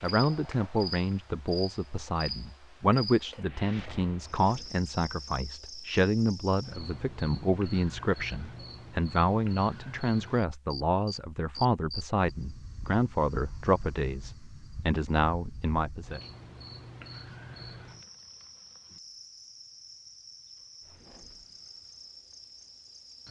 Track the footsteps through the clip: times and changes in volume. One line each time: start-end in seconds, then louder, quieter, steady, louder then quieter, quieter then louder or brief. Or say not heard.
not heard.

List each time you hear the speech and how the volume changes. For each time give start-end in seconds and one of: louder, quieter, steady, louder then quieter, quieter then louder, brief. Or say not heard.
0.0-16.2 steady.